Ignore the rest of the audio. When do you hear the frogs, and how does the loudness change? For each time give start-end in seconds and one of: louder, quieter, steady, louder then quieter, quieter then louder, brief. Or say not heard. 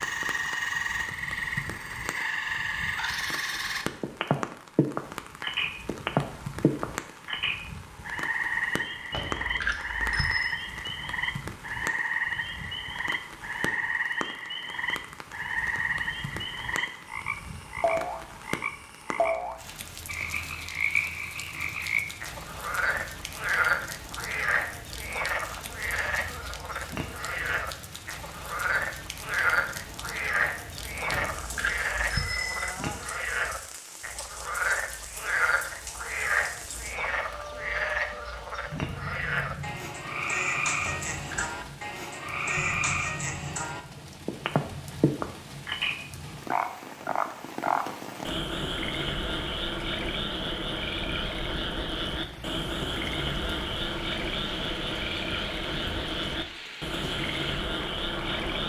0.0-58.6 steady.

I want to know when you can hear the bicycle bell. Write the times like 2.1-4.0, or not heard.
9.1-10.6, 31.1-32.7, 40.8-41.6.